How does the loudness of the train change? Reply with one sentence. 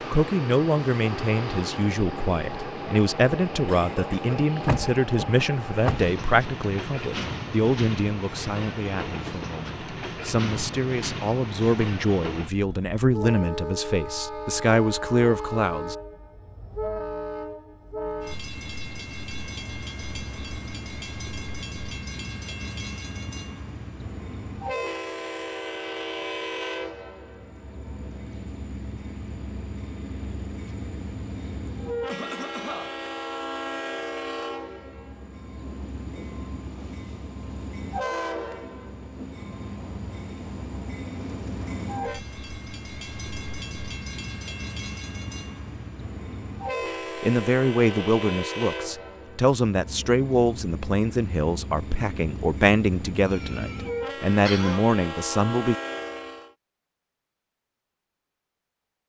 The loudness of the train stays about the same.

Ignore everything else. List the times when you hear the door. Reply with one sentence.
You can hear the door from 4.7 to 6.5 s.